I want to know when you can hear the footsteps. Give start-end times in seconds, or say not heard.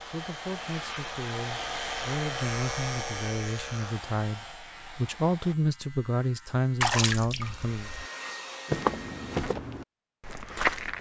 8.7-10.9.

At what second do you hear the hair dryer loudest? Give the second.
2 s.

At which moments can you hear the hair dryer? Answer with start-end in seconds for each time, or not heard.
0.0-5.5, 7.4-9.6.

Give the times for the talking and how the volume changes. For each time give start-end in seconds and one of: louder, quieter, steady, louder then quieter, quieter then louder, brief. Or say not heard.
0.1-7.9 louder.